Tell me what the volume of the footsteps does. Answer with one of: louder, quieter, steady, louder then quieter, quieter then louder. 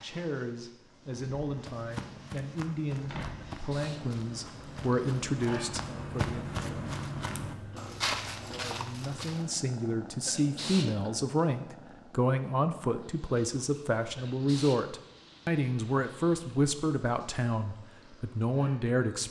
louder.